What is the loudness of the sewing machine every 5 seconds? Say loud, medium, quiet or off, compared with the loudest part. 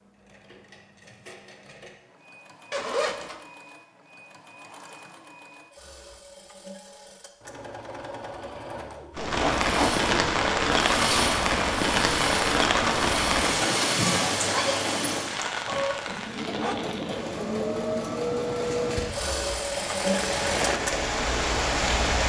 quiet, medium, loud, loud, loud.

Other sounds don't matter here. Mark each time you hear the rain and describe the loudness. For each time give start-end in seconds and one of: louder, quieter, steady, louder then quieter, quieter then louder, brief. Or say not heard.
9.2-22.2 quieter then louder.